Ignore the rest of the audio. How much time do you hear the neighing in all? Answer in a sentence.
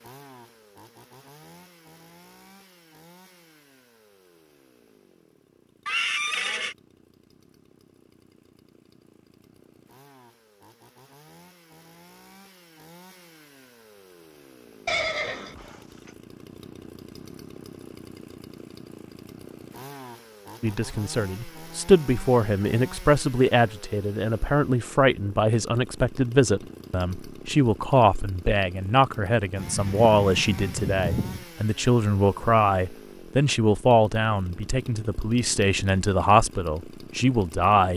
You can hear the neighing for 4 seconds altogether.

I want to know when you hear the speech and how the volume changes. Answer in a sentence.
The speech can be heard from 20.6 to 37.9 s, at a steady volume.